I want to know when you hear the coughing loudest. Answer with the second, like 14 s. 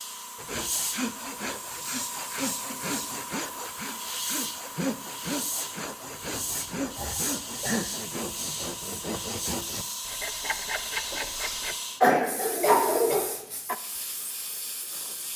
12 s.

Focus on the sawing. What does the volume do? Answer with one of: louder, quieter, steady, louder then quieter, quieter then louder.
steady.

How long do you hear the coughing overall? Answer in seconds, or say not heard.
6 s.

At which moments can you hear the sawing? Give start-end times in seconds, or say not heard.
0.3-11.8.